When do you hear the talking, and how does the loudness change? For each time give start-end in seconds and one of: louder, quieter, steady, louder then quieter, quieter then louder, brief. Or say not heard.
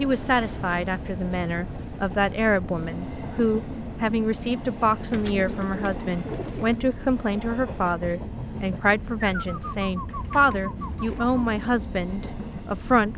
0.0-13.1 steady.